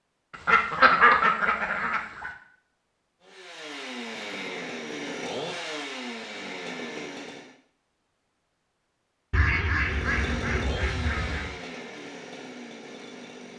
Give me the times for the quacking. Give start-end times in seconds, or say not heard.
0.3-2.3, 9.3-11.5.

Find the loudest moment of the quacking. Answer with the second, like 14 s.
1 s.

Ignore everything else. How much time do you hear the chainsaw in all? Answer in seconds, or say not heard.
8 s.